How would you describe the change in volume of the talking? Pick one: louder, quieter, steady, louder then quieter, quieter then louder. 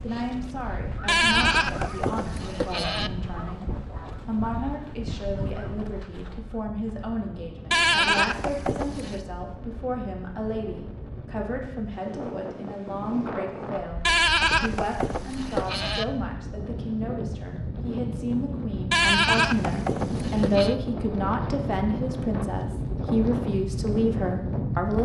louder.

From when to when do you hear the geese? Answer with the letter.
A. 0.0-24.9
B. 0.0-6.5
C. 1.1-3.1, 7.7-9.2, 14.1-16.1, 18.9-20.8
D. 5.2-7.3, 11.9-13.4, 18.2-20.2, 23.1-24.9
B.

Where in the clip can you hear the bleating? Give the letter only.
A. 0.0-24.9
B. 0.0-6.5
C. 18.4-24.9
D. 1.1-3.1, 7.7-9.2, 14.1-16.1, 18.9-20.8
D.